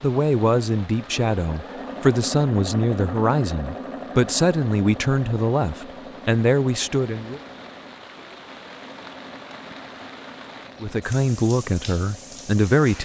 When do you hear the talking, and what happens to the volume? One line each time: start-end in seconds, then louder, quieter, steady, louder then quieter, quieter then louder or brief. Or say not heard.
0.0-7.4 steady
10.8-13.0 brief.